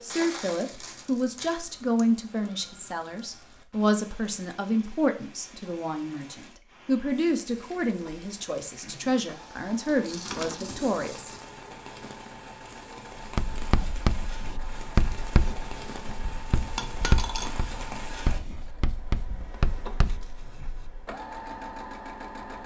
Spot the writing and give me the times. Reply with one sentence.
You can hear the writing from 13.2 to 21.1 s.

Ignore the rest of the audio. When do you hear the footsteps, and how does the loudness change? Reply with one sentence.
You can't hear the footsteps here.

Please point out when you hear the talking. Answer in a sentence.
You can hear the talking from 0.0 to 11.3 s.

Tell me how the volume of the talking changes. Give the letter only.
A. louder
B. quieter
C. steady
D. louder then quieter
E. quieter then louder
C.